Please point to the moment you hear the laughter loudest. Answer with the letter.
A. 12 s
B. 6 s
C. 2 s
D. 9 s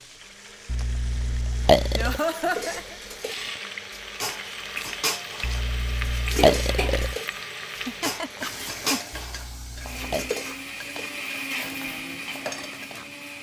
C.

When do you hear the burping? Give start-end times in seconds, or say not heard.
0.7-2.2, 5.4-7.2, 9.1-10.3.